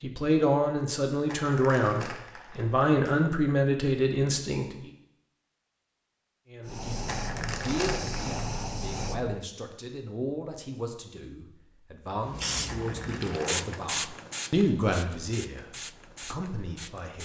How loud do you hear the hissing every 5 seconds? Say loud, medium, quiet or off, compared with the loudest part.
off, loud, loud, medium.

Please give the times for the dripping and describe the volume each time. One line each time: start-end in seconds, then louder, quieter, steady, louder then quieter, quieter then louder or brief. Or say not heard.
not heard.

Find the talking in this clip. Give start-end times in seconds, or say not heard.
0.0-4.9, 6.5-17.2.